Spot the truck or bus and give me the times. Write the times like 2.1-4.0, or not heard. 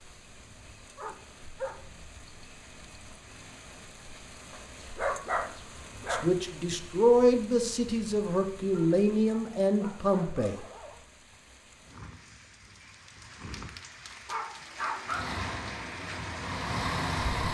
15.1-17.4.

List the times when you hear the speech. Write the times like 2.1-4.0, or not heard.
6.1-10.6.